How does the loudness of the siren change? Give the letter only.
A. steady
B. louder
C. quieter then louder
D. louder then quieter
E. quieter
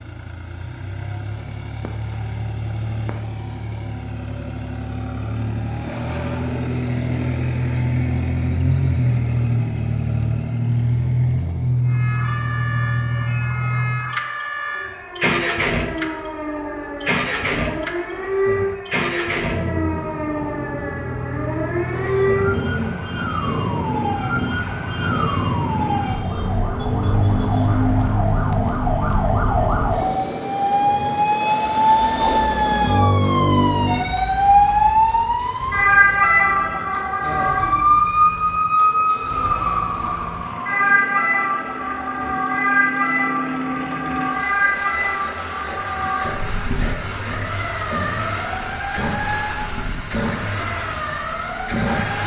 D.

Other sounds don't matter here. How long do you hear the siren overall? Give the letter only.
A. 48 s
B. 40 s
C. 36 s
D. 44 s
B.